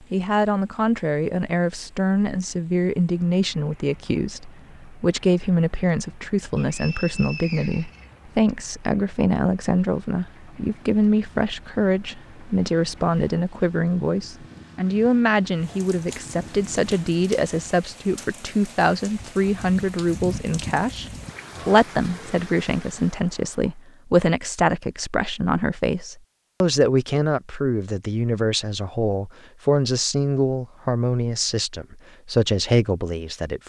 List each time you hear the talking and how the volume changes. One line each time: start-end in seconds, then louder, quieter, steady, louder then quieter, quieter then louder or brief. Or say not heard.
0.1-33.6 steady.